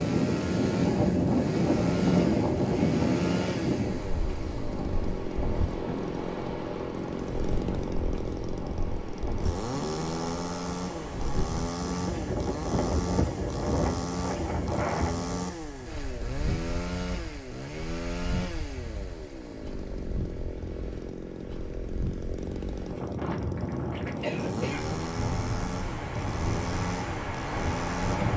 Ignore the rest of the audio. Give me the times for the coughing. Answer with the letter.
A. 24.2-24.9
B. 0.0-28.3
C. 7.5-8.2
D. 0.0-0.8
A.